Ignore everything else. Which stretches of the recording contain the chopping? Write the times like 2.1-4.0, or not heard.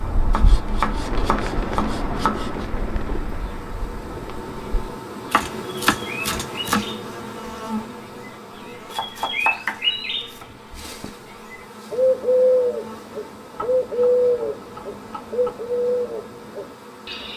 0.3-2.6, 5.3-6.9, 8.9-10.4, 13.6-15.5.